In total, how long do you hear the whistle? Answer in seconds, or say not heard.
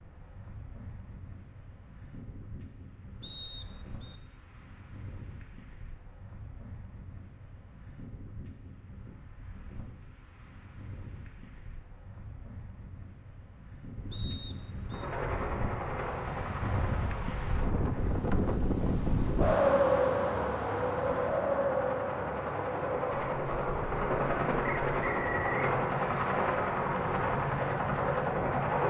3 s.